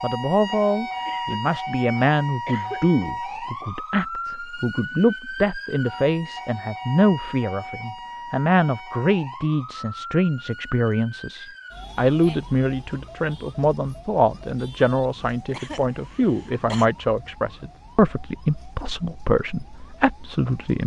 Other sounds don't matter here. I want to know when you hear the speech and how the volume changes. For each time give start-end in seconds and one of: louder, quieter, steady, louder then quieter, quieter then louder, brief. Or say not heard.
0.0-20.8 steady.